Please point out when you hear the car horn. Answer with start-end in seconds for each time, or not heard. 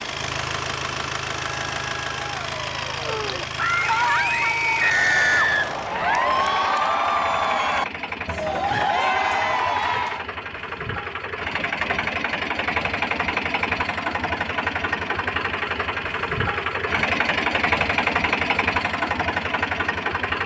not heard.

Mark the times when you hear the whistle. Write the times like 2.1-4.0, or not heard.
4.8-6.5.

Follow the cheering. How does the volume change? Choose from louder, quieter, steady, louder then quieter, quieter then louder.
louder.